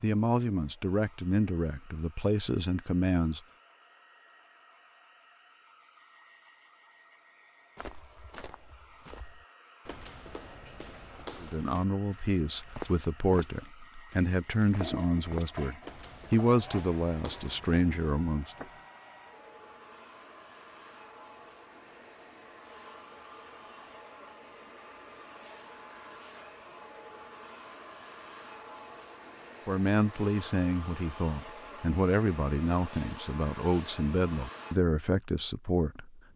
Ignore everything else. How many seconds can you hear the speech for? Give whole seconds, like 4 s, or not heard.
17 s.